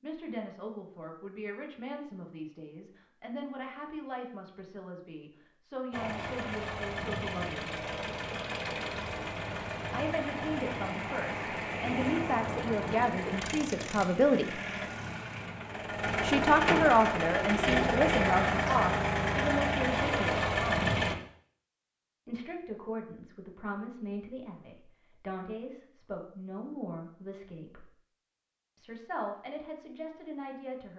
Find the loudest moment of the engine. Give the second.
18 s.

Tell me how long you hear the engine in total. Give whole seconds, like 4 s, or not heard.
15 s.